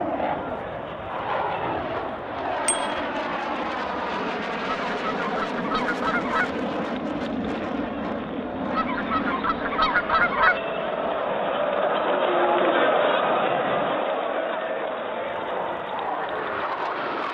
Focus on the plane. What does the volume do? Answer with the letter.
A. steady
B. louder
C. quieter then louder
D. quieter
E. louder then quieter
C.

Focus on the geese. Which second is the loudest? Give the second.
10 s.